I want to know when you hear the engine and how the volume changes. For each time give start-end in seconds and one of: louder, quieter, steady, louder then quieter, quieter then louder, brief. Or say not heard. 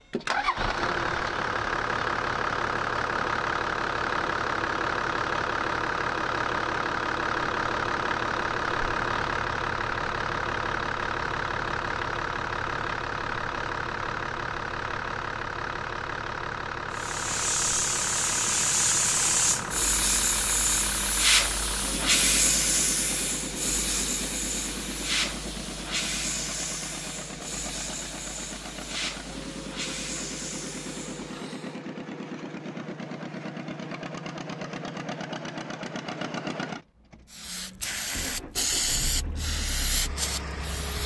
0.1-41.0 quieter.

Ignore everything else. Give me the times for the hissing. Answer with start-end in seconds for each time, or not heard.
16.9-31.8, 37.3-41.0.